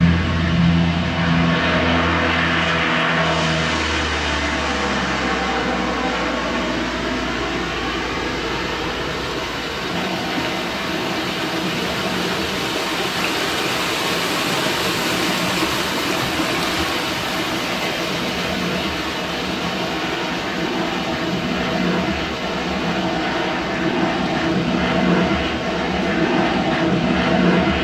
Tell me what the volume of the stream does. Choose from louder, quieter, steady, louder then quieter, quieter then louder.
louder then quieter.